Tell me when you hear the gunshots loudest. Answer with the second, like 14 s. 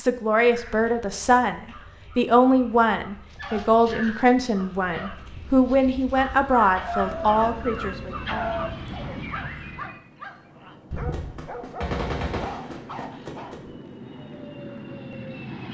12 s.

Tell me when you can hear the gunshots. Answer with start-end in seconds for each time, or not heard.
10.9-13.7.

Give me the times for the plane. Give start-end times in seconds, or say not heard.
7.0-15.6.